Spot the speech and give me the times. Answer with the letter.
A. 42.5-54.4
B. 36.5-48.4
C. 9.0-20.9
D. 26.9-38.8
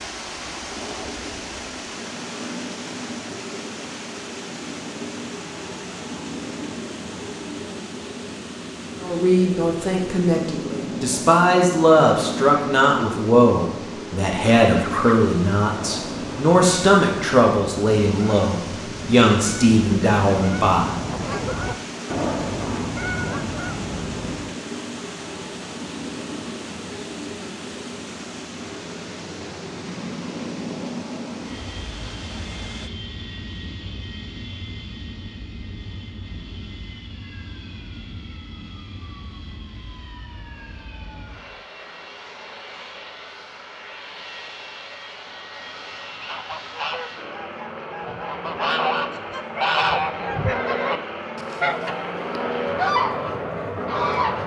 C.